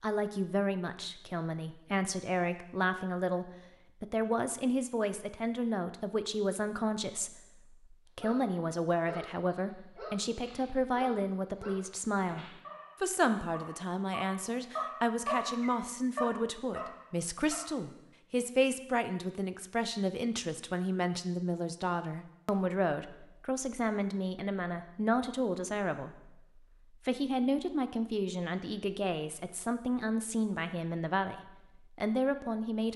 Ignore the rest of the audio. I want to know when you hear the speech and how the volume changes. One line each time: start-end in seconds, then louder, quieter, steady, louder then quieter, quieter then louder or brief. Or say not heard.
0.0-32.9 steady.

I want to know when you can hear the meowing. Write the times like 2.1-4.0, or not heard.
not heard.